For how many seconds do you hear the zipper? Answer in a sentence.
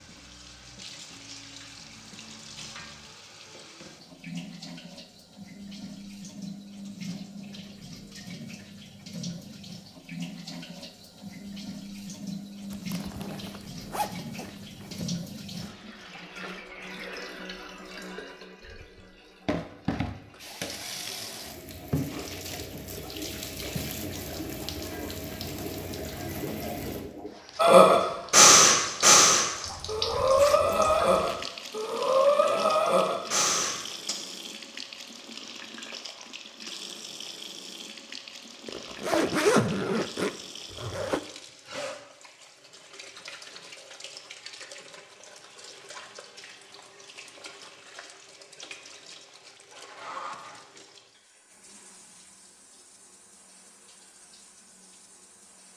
The zipper can be heard for 7 seconds in total.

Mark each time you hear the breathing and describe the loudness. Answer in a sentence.
You can hear the breathing from 27.6 to 34.1 s, getting quieter.